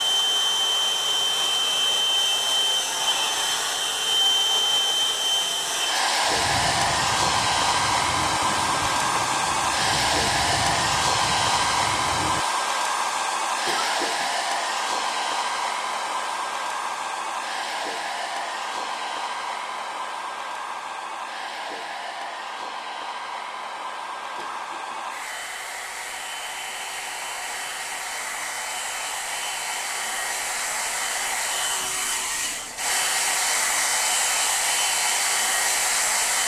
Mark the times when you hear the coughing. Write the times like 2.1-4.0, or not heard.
13.7-14.3, 24.4-25.1.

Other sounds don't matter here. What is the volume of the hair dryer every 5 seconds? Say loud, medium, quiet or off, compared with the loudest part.
loud, loud, loud, medium, medium, medium, loud, loud.